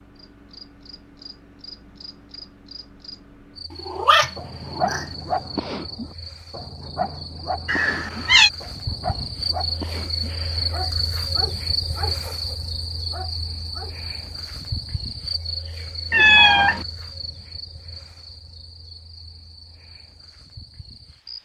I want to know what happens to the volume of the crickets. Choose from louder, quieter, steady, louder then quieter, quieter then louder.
louder then quieter.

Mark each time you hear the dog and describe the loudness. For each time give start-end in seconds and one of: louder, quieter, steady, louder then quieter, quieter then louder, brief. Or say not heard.
4.3-13.9 quieter.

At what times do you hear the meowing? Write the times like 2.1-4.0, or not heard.
3.9-5.0, 7.7-8.5, 16.1-16.9.